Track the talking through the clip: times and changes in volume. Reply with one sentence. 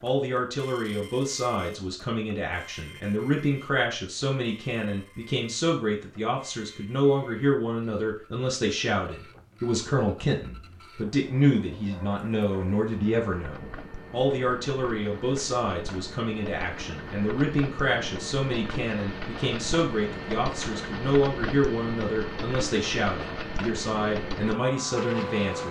The talking can be heard from 0.0 to 25.6 s, at a steady volume.